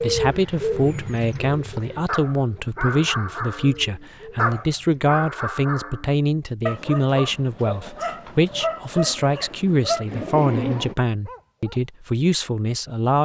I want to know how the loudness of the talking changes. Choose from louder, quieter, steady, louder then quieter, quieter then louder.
steady.